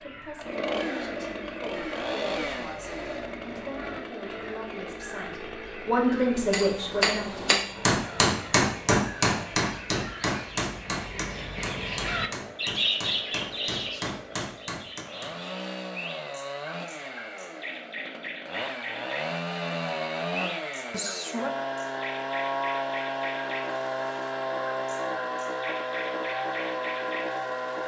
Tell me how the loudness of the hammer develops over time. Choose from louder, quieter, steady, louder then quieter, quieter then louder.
quieter.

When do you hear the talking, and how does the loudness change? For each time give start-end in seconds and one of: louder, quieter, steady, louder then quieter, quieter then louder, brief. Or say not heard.
0.0-7.8 louder.